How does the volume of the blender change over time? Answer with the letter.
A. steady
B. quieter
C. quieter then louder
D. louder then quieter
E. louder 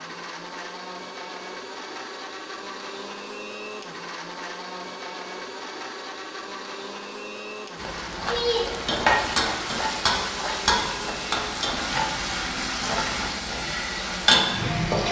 A.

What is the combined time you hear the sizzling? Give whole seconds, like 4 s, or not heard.
7 s.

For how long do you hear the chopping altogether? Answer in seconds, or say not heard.
not heard.